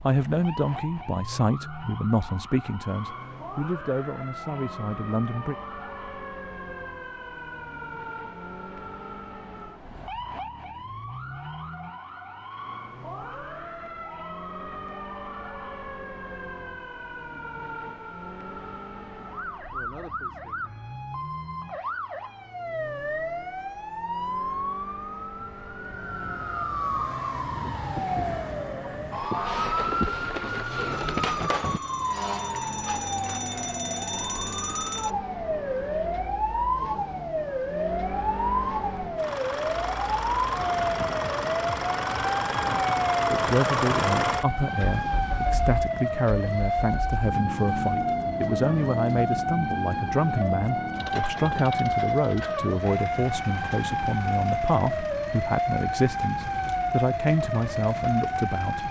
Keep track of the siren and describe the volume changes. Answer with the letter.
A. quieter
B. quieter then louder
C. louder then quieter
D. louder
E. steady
D.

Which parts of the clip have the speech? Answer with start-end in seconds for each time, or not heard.
0.0-5.5, 43.2-58.8.